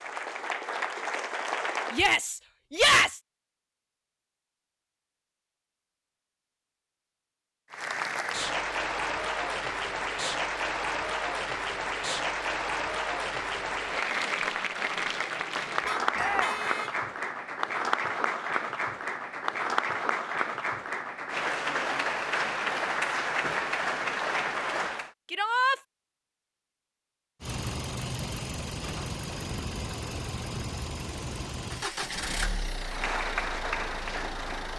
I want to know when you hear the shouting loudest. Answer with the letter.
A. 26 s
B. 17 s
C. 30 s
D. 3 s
D.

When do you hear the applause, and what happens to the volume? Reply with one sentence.
You can hear the applause briefly from 0.0 to 2.0 s; from 7.7 to 25.1 s, at a steady volume; and briefly from 32.8 to 34.7 s.